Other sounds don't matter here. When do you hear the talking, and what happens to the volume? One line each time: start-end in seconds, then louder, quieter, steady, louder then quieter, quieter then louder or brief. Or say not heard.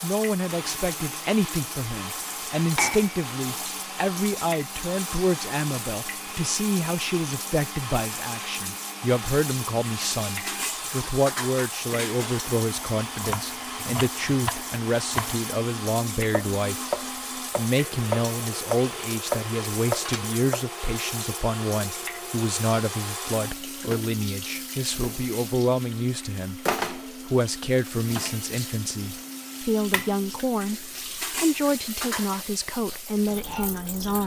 0.0-16.8 steady
17.6-34.2 steady.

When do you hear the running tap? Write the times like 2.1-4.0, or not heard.
0.0-34.2.